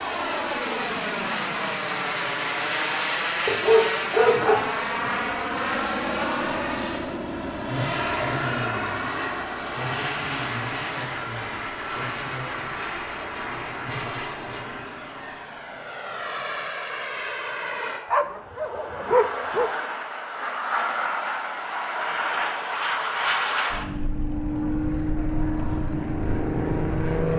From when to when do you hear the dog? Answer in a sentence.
The dog can be heard from 3.5 to 5.1 s and from 18.1 to 19.7 s.